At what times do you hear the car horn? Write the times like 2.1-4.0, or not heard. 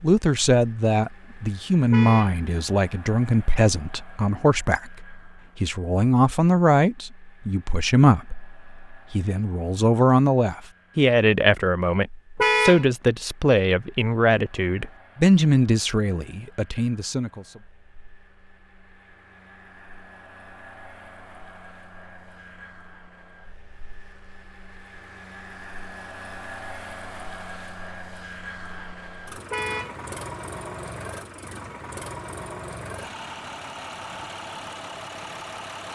1.9-2.4, 12.3-12.8, 29.5-29.9.